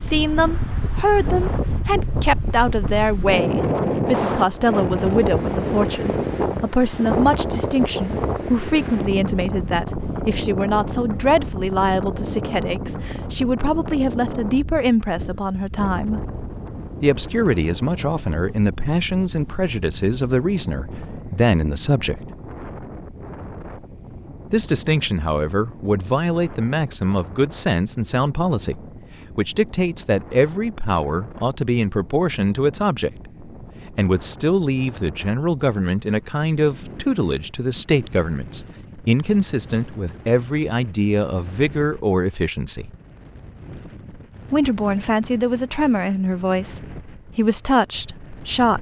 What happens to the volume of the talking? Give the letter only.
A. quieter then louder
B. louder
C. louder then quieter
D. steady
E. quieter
D.